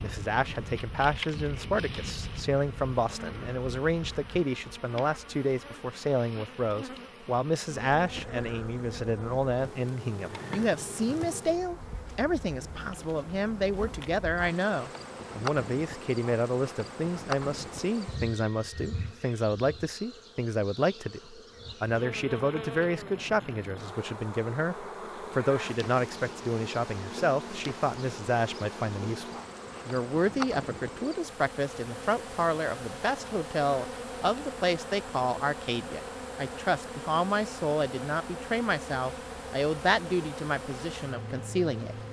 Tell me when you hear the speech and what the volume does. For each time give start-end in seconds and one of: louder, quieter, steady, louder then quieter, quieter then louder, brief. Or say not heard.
0.0-42.0 steady.